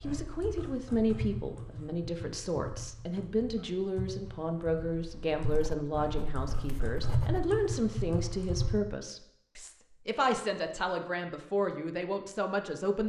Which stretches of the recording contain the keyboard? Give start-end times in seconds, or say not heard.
0.0-8.8.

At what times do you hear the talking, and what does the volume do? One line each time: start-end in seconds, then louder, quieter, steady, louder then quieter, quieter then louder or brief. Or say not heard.
0.0-13.0 steady.